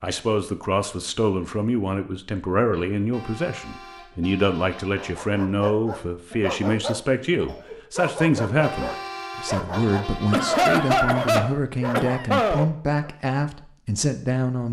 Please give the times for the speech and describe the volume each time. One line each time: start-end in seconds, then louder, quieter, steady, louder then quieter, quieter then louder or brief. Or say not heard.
0.0-14.6 steady.